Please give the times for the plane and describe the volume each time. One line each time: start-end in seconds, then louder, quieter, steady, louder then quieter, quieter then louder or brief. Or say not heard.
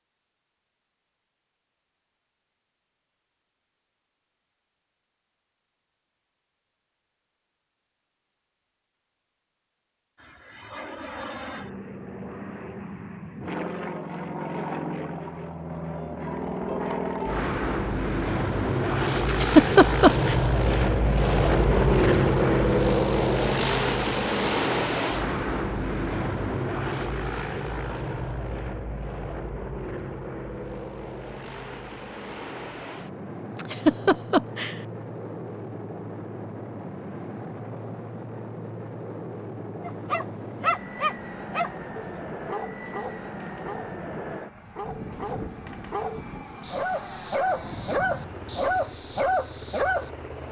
10.2-50.4 louder then quieter.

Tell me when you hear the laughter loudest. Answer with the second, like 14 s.
20 s.